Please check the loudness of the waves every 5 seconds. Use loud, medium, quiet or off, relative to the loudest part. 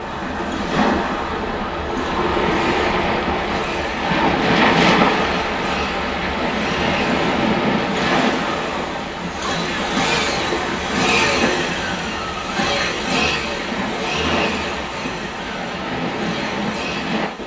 loud, loud, medium, medium.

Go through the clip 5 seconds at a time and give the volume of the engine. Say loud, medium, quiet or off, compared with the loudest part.
quiet, medium, loud, medium.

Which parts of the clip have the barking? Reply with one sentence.
The barking can't be heard in this clip.